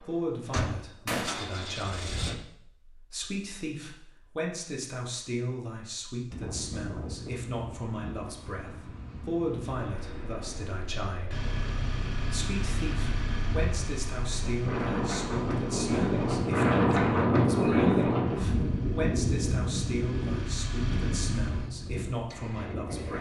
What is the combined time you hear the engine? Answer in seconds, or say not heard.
12 s.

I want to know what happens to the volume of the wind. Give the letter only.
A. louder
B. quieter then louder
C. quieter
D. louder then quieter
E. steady
D.